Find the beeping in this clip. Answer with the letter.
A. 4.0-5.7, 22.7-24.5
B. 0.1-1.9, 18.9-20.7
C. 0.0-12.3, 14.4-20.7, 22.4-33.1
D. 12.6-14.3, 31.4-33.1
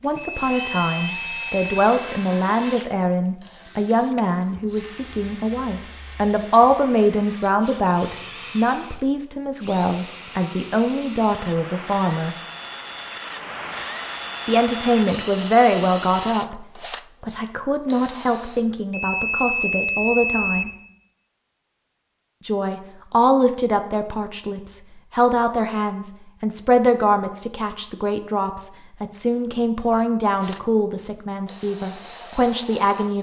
B.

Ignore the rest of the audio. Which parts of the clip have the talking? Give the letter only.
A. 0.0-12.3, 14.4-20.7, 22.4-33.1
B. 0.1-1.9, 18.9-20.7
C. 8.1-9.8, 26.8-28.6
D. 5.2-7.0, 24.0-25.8
A.